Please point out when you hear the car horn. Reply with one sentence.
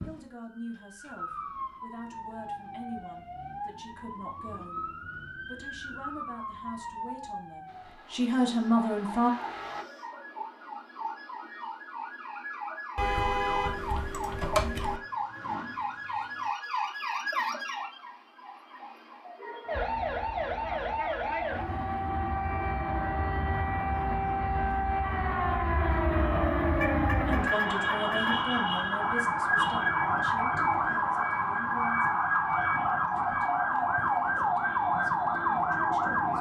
You can hear the car horn from 12.9 to 15.0 s and from 26.8 to 28.4 s.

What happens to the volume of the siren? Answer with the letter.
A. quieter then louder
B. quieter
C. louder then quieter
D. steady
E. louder
E.